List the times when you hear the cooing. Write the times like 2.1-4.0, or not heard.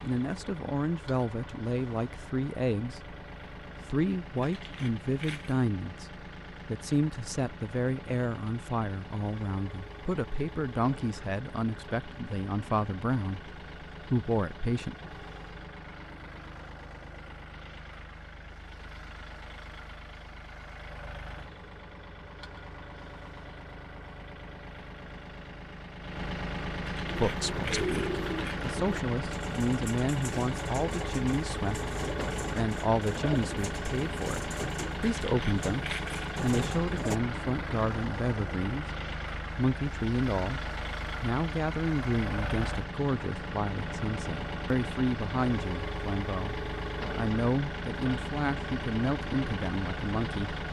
27.1-37.2.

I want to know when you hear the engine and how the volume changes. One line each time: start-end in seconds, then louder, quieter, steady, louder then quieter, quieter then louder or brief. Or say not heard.
0.0-50.6 louder.